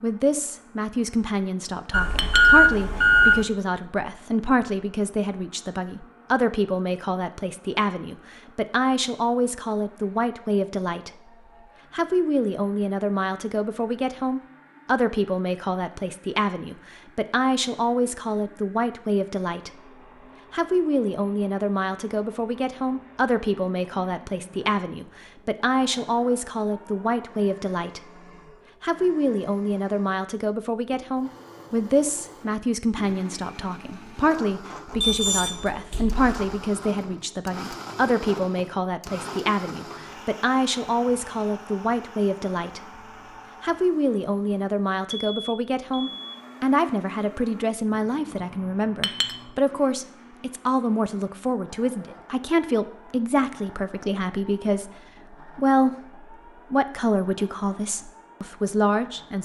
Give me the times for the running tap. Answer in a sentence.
You can't hear the running tap here.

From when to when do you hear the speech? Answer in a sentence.
You can hear the speech from 0.0 to 11.1 s, from 11.9 to 19.7 s, from 20.5 to 28.2 s, from 28.8 to 43.0 s and from 43.6 to 59.4 s.